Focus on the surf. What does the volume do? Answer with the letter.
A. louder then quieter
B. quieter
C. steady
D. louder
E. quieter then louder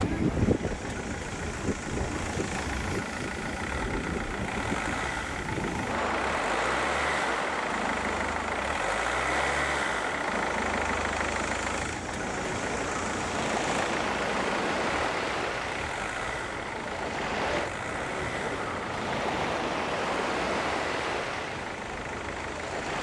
C.